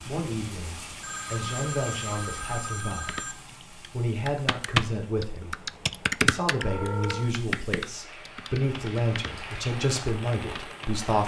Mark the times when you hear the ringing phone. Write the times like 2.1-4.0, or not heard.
1.0-3.4, 6.5-7.3.